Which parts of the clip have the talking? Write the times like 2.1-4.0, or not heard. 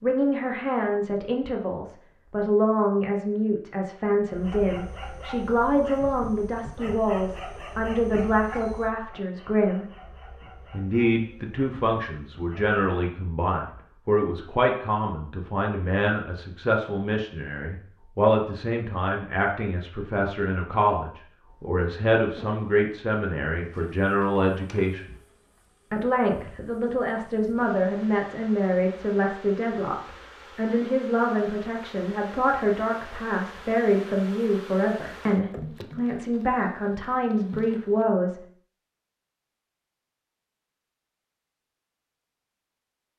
0.0-9.8, 10.7-25.1, 25.9-38.4.